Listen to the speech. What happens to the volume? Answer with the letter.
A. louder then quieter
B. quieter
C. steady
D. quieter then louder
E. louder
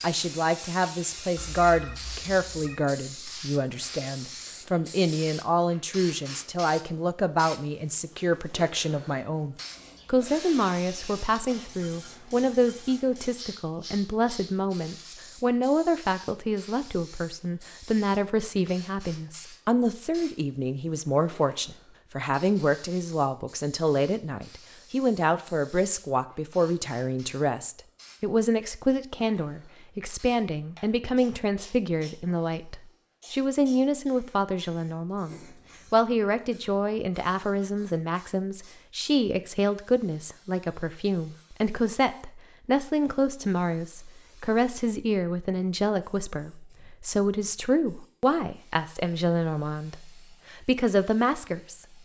C.